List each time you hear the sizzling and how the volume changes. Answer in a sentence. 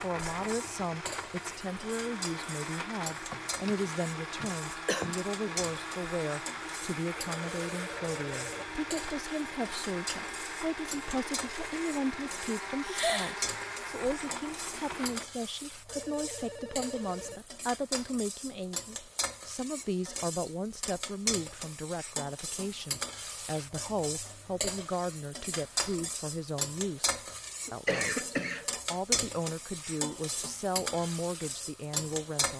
The sizzling can be heard from 0.0 to 32.5 s, getting louder.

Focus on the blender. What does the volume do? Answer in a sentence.
The loudness of the blender stays about the same.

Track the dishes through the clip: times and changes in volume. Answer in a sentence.
You can't hear the dishes here.